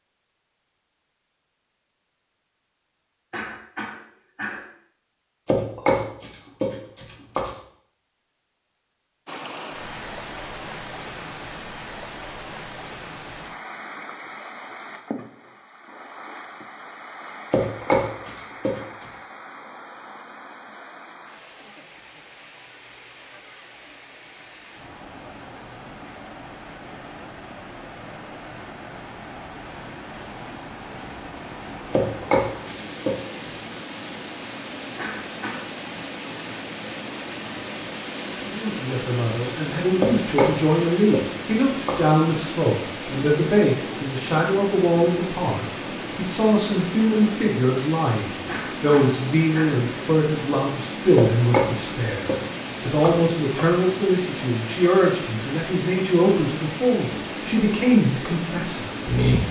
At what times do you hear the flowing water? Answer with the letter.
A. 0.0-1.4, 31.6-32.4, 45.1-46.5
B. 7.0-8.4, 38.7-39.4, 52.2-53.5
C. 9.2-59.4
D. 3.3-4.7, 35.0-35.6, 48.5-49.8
C.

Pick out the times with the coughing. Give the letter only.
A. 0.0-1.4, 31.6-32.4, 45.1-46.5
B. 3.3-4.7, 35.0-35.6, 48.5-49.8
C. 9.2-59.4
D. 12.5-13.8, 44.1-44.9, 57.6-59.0
B.